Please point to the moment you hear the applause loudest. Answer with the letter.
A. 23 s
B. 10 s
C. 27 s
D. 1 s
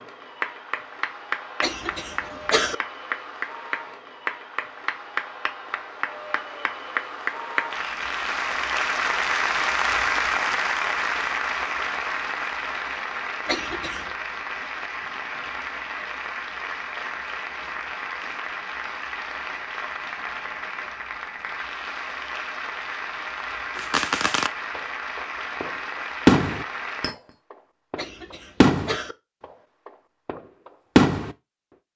B.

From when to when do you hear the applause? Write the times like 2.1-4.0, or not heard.
0.0-27.1.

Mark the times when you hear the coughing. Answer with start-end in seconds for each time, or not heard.
1.6-2.8, 13.4-14.1, 27.9-29.1.